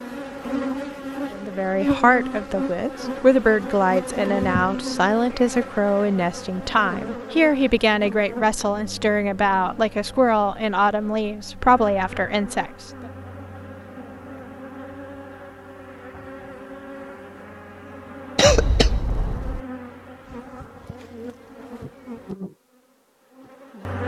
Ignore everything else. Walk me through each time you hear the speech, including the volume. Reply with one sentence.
You can hear the speech from 1.3 to 13.1 s, at a steady volume.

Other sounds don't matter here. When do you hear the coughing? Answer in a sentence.
You can hear the coughing from 18.4 to 19.6 s.